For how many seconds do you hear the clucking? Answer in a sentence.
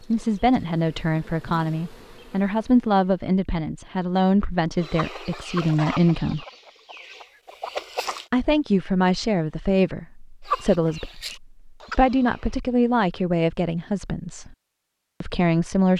You can hear the clucking for 6 seconds altogether.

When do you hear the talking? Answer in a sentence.
You can hear the talking from 0.0 to 6.5 s, from 8.3 to 14.6 s and from 15.2 to 15.9 s.